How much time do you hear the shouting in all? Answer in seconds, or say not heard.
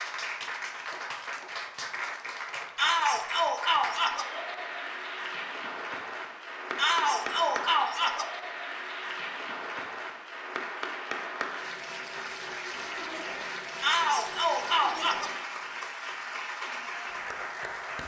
5 s.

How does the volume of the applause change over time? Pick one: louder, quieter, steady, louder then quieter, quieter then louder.
steady.